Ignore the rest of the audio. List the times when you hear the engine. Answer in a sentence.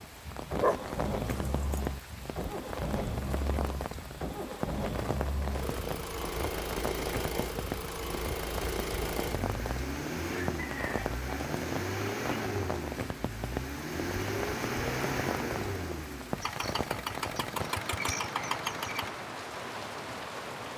You can hear the engine from 0.1 to 19.1 s.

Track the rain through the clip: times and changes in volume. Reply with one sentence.
You can hear the rain from 0.0 to 20.7 s, at a steady volume.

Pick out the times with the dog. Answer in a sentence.
You can hear the dog from 0.0 to 1.6 s.